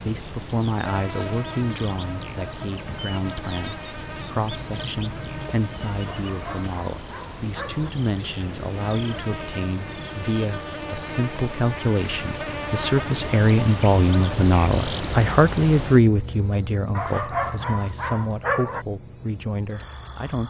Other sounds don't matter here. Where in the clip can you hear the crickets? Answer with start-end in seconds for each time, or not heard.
0.0-20.4.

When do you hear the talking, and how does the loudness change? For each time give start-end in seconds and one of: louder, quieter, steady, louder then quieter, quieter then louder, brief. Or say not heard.
0.0-20.4 louder then quieter.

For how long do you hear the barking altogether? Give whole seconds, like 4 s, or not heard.
4 s.